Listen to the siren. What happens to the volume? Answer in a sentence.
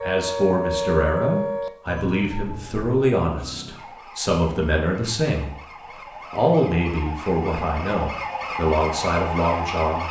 The volume of the siren goes down, then up.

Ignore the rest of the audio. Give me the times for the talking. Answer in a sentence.
You can hear the talking from 0.0 to 5.5 s and from 6.3 to 10.0 s.